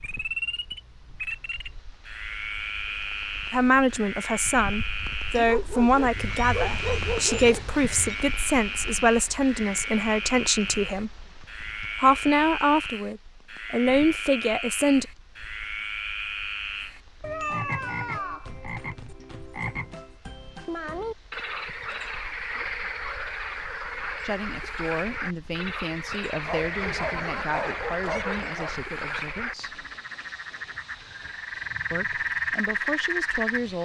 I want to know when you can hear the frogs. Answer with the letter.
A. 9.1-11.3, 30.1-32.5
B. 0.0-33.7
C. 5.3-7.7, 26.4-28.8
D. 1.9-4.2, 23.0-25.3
B.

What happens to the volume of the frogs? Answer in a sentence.
The loudness of the frogs stays about the same.